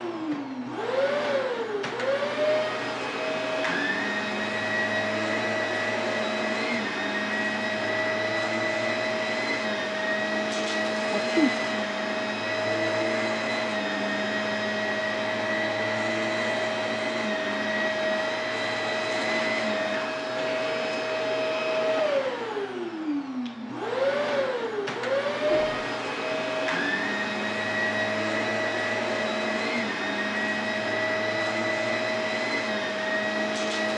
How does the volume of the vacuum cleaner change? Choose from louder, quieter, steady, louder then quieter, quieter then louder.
steady.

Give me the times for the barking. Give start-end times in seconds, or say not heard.
not heard.